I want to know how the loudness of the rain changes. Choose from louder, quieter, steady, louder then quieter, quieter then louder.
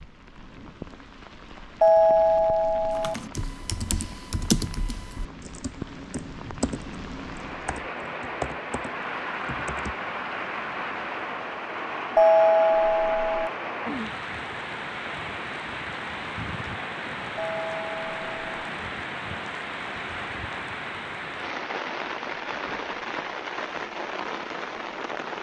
louder.